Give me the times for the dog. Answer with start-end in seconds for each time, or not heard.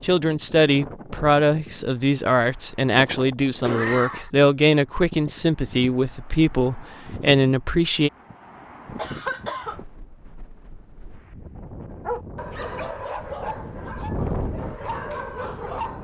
12.0-16.0.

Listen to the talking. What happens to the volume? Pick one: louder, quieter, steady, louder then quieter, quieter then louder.
steady.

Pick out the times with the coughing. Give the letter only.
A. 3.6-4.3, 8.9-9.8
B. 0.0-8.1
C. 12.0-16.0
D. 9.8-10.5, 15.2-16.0
A.